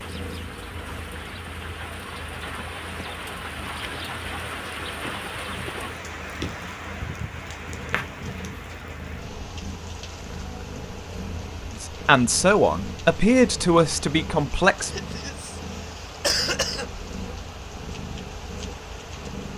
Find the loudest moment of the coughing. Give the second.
16 s.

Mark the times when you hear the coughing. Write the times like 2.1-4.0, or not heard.
14.8-16.9.